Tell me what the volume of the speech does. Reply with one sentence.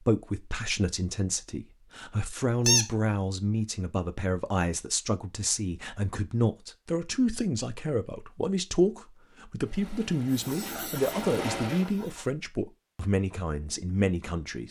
The volume of the speech stays about the same.